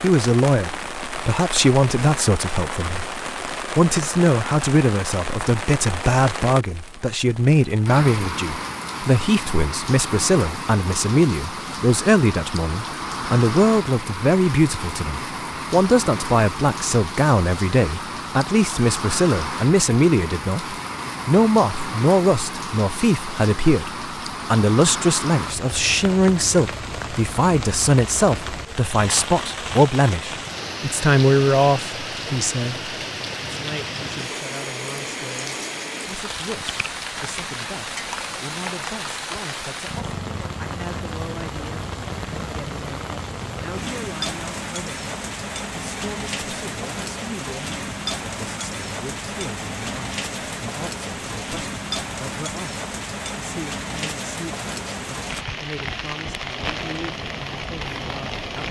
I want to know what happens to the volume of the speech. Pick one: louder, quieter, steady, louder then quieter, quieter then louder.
quieter.